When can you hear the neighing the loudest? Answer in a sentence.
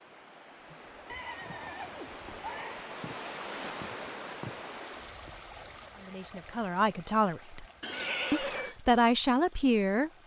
The loudest moment of the neighing is at 8 seconds.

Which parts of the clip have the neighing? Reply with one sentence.
You can hear the neighing from 1.1 to 2.8 s and from 7.8 to 8.8 s.